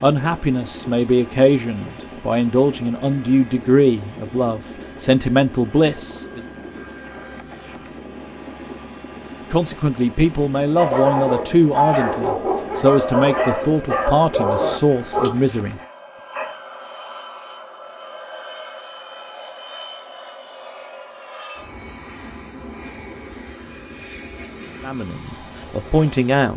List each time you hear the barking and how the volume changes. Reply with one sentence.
The barking can be heard from 10.8 to 16.6 s, at a steady volume.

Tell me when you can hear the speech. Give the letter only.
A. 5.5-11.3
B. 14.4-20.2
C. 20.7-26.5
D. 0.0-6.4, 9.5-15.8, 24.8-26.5
D.